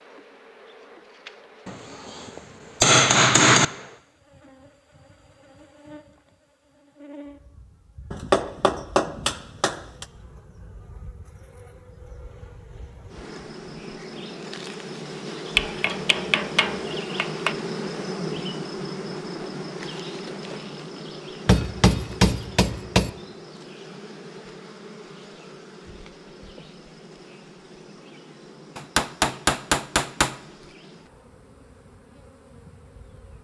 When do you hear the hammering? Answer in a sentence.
You can hear the hammering from 1.6 to 3.6 s, from 8.1 to 10.1 s, from 15.6 to 17.6 s, from 21.4 to 23.1 s and from 28.8 to 30.4 s.